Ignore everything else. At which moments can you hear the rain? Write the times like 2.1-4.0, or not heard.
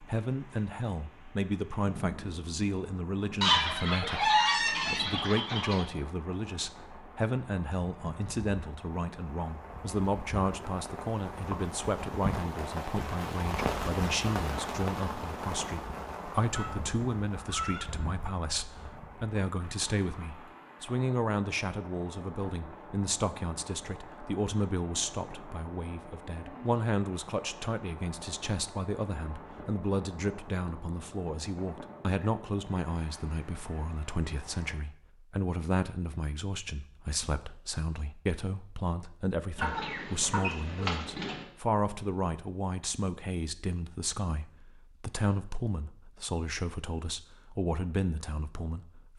0.0-34.8.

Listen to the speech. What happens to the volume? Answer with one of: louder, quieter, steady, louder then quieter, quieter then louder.
steady.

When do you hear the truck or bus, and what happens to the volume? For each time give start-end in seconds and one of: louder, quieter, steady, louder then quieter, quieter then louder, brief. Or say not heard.
not heard.